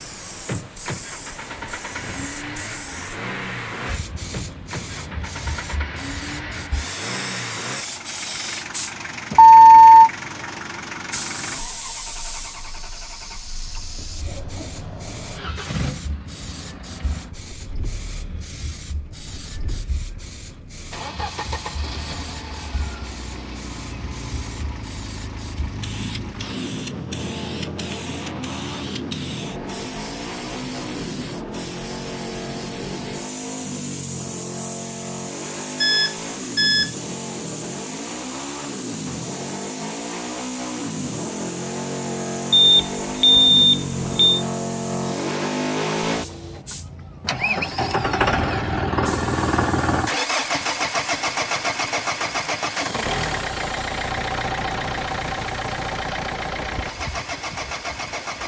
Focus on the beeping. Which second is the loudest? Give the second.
10 s.